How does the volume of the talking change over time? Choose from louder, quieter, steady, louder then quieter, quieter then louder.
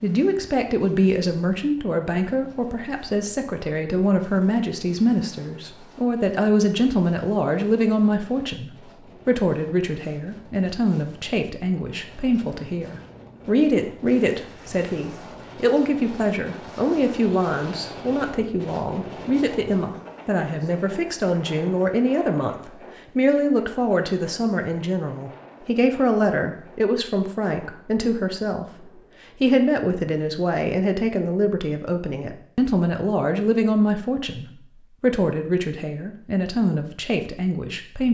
steady.